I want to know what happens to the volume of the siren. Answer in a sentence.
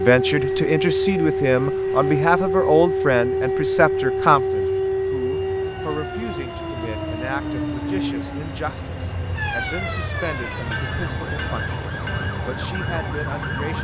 The loudness of the siren goes down.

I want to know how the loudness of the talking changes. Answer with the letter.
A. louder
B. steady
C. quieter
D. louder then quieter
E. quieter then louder
C.